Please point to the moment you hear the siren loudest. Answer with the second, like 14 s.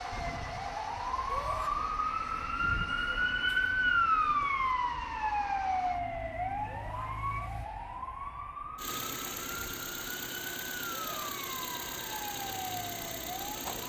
4 s.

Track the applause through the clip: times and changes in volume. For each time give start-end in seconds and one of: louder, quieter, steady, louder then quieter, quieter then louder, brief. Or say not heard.
not heard.